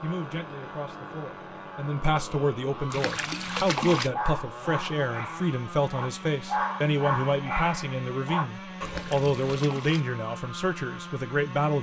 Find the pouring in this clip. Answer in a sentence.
The pouring can be heard from 2.9 to 4.1 s and from 8.8 to 10.0 s.